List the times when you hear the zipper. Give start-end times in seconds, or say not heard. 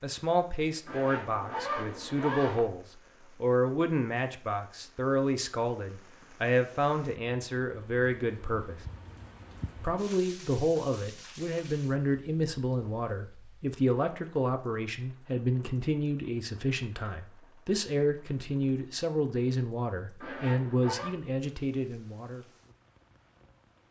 0.8-2.6, 20.2-21.1.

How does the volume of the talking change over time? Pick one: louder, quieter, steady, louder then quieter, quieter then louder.
steady.